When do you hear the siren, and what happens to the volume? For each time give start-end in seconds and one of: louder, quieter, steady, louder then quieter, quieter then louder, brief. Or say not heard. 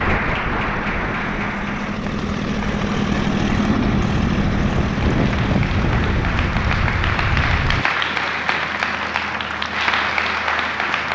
not heard.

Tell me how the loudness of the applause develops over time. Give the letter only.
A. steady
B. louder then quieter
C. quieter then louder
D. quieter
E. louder
C.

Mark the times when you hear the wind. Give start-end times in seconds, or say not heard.
0.0-7.8.